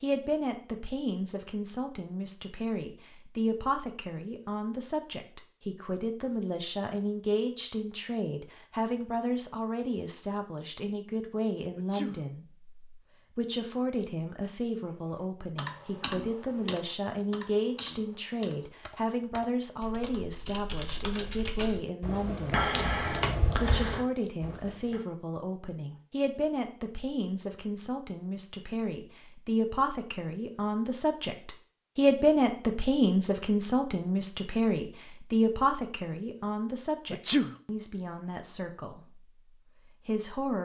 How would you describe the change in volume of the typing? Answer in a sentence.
The volume of the typing goes down, then up.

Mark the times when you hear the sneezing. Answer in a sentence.
The sneezing can be heard from 11.8 to 12.2 s and from 37.1 to 37.5 s.